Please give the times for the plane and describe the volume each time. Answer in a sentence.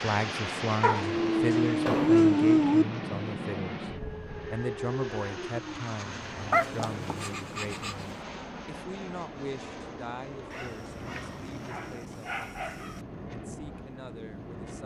You can hear the plane from 0.0 to 14.8 s, getting quieter.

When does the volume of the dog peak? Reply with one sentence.
The volume of the dog peaks at 2 seconds.